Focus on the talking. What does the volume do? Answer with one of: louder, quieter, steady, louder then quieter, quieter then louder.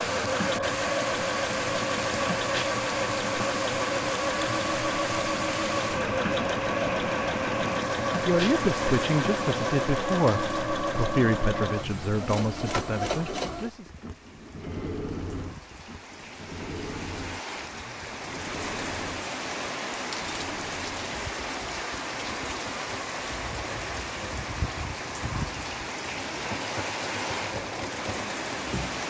quieter.